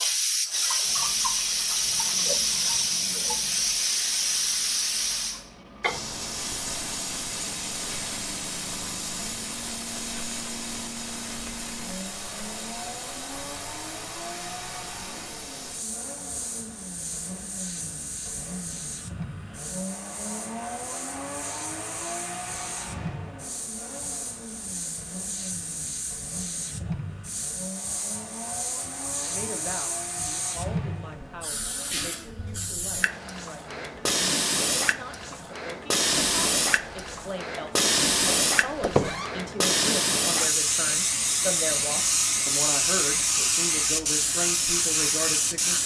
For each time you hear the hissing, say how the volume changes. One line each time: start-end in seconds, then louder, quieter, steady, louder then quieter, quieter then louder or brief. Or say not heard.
0.0-45.8 quieter then louder.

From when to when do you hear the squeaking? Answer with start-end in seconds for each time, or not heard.
38.8-39.3.